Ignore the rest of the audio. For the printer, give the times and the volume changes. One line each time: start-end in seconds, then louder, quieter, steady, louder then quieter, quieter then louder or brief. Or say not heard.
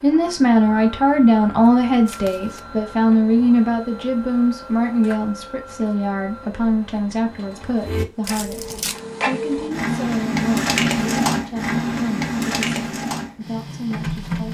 0.0-14.5 louder.